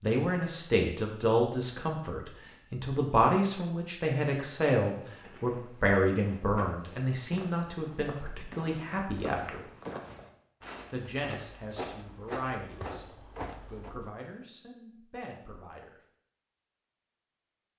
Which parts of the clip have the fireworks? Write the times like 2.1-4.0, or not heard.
not heard.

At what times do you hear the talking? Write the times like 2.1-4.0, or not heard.
0.0-9.7, 10.9-13.1, 13.7-16.0.